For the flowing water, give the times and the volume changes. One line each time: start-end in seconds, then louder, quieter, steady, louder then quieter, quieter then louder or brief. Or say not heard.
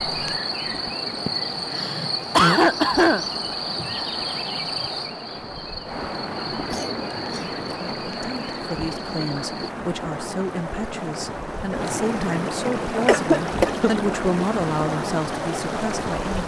0.0-16.4 louder.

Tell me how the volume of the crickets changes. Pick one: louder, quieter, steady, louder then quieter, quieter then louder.
quieter.